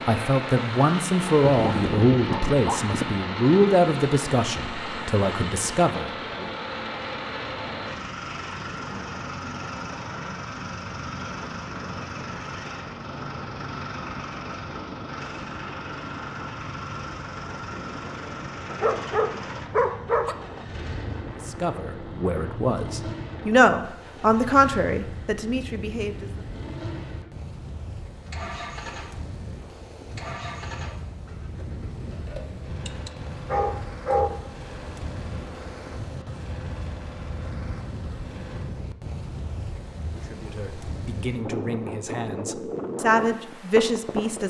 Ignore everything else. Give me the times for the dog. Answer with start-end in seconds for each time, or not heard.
1.4-3.1, 18.7-20.4, 32.9-34.4.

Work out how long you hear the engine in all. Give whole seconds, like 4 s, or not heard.
39 s.